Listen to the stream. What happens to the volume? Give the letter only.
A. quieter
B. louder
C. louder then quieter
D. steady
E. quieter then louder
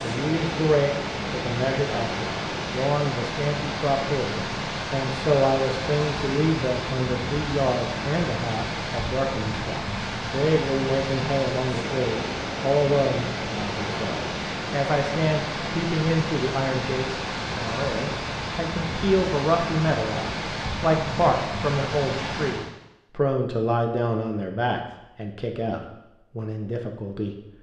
D.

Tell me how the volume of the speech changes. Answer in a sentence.
The volume of the speech stays about the same.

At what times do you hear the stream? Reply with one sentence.
You can hear the stream from 0.0 to 22.7 s.